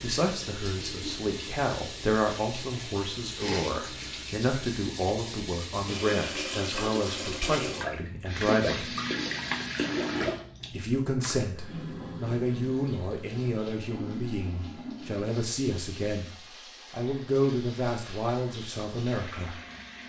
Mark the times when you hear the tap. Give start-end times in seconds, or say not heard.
0.0-20.0.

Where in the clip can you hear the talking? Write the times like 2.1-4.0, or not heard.
0.0-8.9, 10.7-16.3, 16.9-19.6.